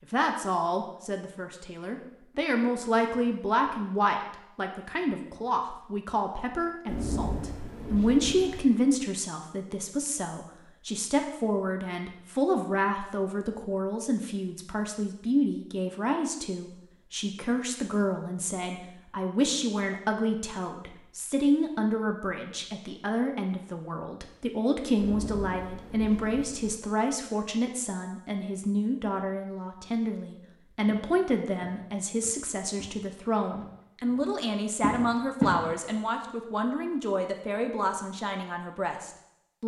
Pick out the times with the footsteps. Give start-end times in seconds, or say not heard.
30.9-35.6.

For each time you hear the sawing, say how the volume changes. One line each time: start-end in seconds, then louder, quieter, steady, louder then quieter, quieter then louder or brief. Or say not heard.
not heard.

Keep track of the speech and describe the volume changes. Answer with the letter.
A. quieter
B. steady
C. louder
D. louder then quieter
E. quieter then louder
B.